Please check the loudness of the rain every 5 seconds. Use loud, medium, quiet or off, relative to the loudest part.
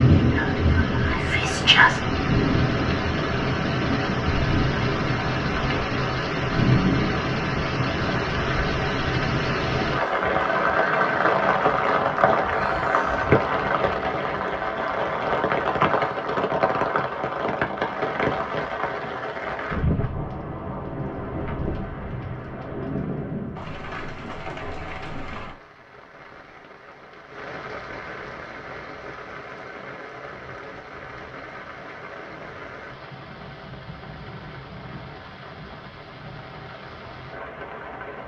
loud, loud, loud, loud, medium, quiet, quiet, quiet.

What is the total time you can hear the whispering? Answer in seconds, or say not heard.
2 s.